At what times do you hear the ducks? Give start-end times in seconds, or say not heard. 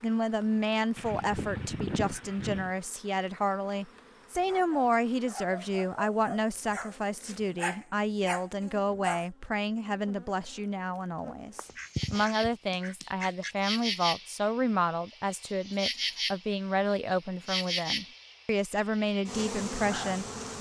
0.9-2.7, 11.6-13.6.